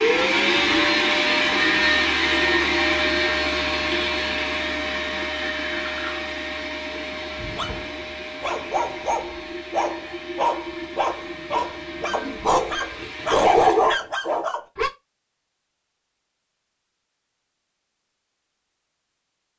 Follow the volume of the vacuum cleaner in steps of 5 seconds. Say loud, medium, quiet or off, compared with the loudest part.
loud, medium, quiet, off.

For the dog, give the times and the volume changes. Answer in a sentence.
You can hear the dog from 7.3 to 14.9 s, getting louder.